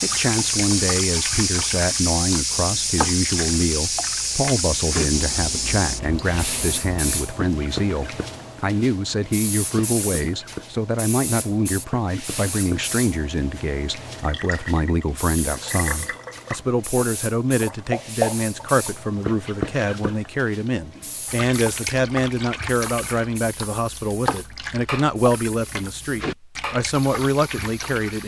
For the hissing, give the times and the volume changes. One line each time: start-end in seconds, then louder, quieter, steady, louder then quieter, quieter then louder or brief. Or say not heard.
0.0-28.2 quieter.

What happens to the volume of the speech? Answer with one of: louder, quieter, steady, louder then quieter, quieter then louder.
steady.